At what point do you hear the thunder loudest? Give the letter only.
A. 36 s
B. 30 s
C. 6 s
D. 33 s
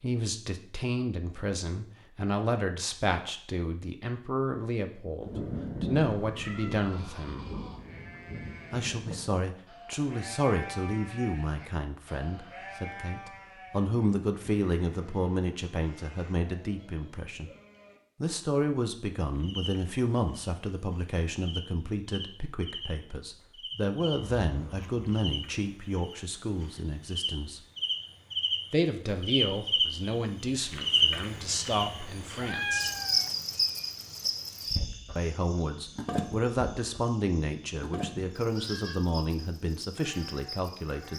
C.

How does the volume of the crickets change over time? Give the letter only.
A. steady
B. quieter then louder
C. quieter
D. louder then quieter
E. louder
D.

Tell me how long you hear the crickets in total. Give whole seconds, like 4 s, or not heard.
22 s.